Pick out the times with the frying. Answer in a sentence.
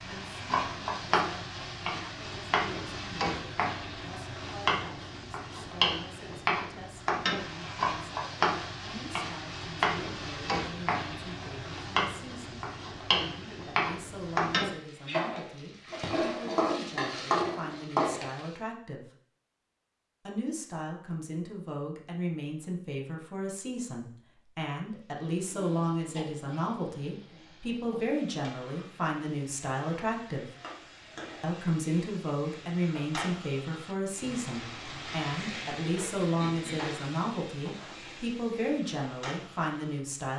You can hear the frying from 0.0 to 18.6 s and from 24.9 to 40.2 s.